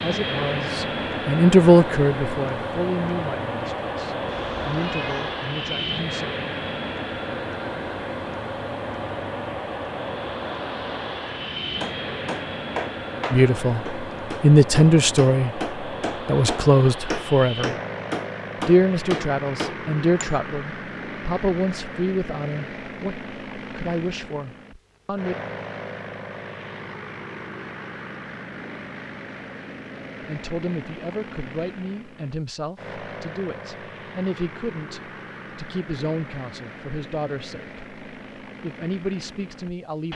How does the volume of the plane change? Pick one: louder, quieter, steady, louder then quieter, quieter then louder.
quieter.